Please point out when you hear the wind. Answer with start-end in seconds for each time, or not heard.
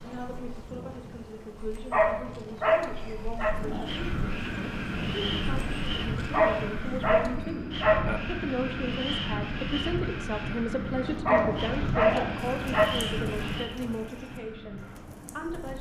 3.5-15.7.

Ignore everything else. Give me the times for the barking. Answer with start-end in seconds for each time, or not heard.
1.9-3.5, 6.3-8.2, 11.2-12.9.